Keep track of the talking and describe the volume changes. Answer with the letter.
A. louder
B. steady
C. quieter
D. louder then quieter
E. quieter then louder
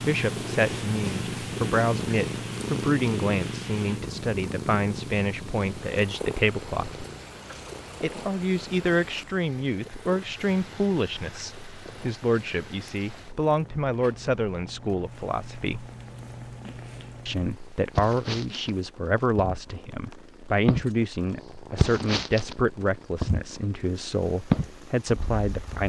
B.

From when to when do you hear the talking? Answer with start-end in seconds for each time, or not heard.
0.1-7.0, 8.0-15.8, 17.2-25.8.